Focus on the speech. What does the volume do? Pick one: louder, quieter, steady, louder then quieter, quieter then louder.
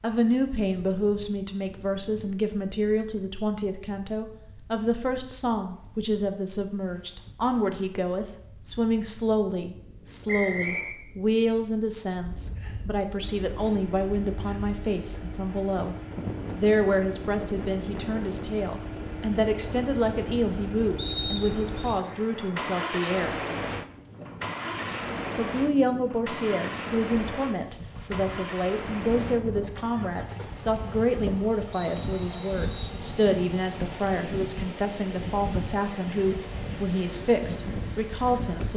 steady.